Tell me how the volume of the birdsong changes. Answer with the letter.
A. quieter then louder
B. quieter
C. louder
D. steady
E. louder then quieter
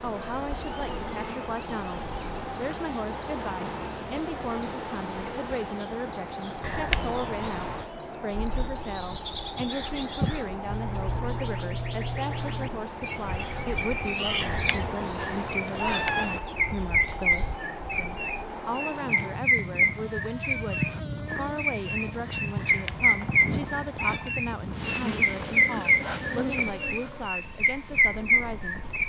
C.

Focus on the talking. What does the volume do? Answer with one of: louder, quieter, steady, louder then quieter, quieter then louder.
steady.